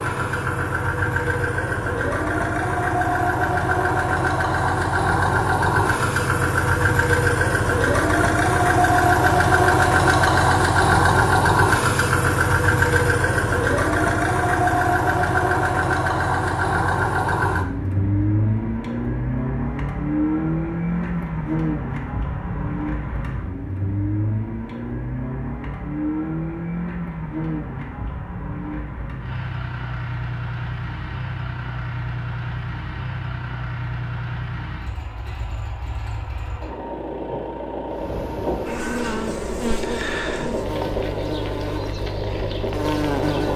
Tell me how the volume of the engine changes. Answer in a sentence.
The volume of the engine goes down.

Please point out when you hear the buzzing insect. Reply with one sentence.
The buzzing insect can be heard from 37.9 to 43.5 s.